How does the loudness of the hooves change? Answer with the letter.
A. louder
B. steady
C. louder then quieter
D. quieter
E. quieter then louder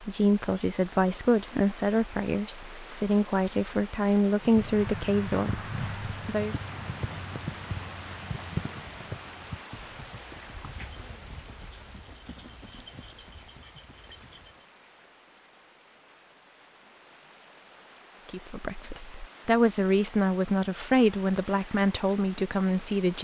D.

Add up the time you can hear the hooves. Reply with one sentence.
You can hear the hooves for 10 seconds altogether.